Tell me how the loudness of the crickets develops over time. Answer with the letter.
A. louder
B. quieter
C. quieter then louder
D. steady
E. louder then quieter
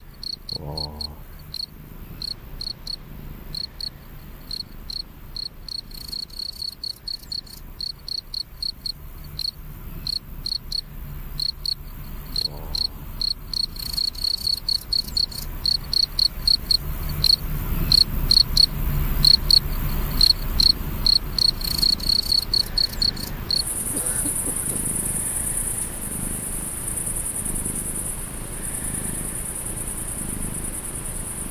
E.